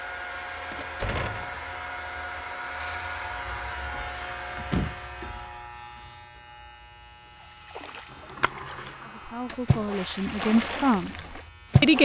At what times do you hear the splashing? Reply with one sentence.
You can hear the splashing from 7.8 to 12.0 s.